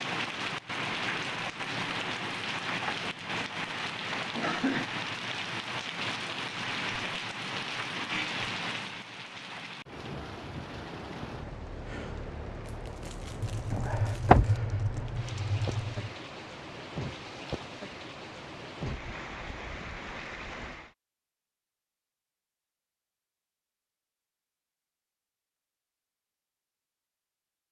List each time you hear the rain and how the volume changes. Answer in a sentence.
You can hear the rain from 0.0 to 20.9 s, getting quieter.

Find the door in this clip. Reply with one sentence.
The door can be heard from 13.8 to 15.1 s.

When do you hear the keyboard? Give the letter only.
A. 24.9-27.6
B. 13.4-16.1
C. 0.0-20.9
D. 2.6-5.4
B.